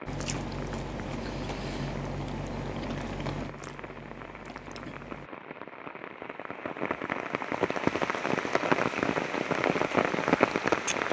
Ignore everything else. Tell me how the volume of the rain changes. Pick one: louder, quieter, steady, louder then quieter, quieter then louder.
louder.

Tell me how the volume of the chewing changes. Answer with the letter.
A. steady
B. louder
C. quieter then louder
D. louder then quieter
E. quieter
E.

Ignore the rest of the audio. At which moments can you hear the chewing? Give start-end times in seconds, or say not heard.
0.1-5.3.